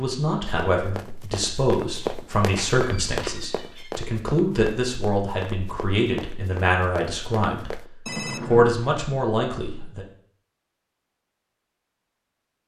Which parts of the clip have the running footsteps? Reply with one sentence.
The running footsteps can be heard from 0.5 to 7.9 s.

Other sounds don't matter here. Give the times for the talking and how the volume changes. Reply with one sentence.
You can hear the talking from 0.0 to 7.8 s, at a steady volume; and briefly from 8.4 to 10.1 s.